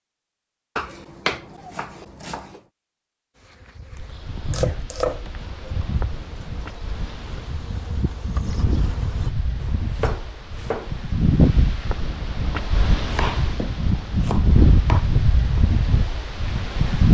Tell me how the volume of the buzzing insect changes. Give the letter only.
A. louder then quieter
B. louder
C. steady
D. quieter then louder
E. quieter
B.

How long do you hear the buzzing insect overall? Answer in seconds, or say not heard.
6 s.